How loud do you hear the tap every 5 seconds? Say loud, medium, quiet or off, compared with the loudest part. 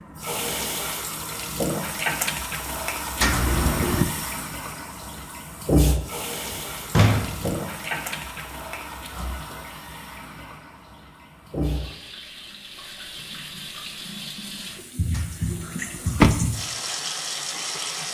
loud, loud, medium, loud.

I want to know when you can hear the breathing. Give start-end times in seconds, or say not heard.
not heard.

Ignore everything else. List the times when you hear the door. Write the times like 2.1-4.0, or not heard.
3.2-4.0, 6.5-7.6, 15.9-16.4.